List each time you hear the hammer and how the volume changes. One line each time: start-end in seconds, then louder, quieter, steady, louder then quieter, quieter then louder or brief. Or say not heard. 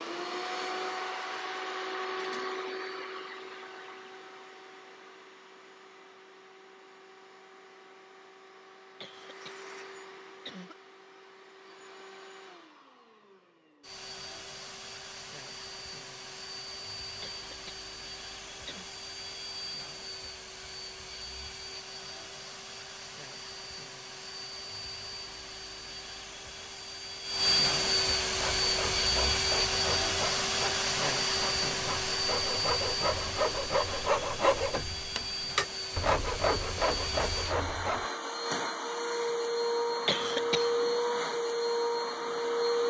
not heard.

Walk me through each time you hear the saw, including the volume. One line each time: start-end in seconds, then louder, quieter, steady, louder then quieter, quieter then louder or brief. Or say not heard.
28.3-38.1 louder.